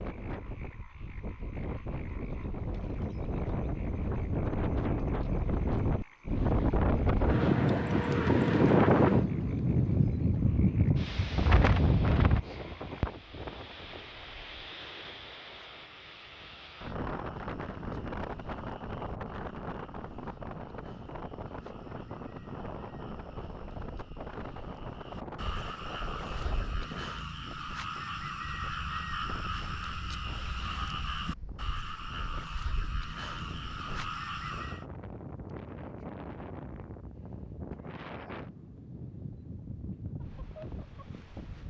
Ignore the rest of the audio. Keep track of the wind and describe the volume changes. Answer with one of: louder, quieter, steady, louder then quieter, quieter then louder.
quieter.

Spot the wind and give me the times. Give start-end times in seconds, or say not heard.
0.0-41.6.